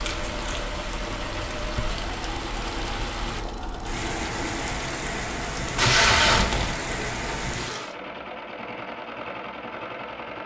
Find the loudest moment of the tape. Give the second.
6 s.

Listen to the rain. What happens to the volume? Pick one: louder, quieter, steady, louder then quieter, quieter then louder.
steady.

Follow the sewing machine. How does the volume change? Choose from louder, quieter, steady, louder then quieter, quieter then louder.
steady.